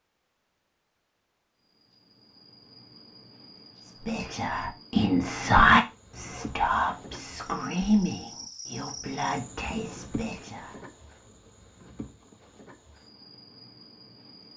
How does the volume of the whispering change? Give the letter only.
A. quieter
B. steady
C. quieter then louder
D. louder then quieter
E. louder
D.